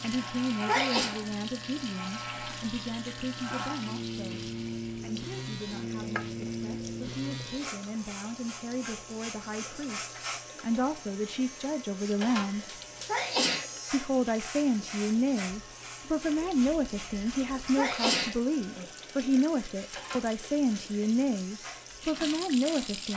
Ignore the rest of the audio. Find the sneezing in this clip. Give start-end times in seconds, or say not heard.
0.0-1.1, 12.4-13.7, 17.1-18.9.